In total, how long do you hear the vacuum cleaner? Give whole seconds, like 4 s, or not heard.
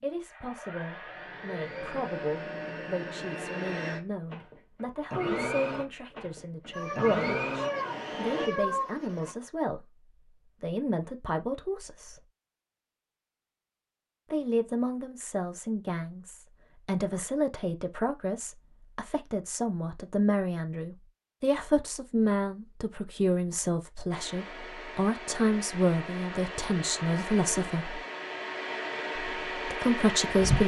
15 s.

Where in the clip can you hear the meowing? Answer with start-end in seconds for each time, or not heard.
6.7-9.3.